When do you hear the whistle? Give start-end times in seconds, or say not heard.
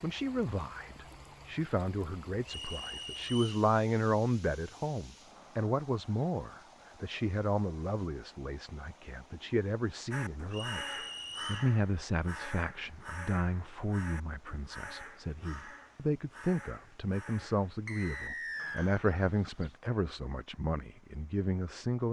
2.5-3.6, 10.5-11.6, 17.9-18.9.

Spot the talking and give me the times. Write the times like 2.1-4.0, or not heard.
0.0-22.0.